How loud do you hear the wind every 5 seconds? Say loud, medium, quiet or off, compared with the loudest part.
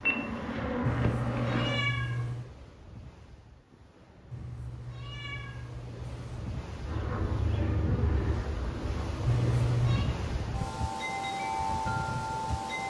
quiet, medium, loud.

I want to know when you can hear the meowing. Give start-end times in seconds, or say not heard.
0.8-2.5, 4.3-6.5, 9.2-10.1.